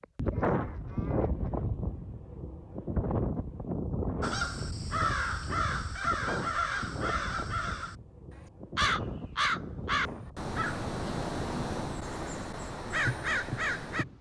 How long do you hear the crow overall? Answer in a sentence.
The crow can be heard for 10 seconds in total.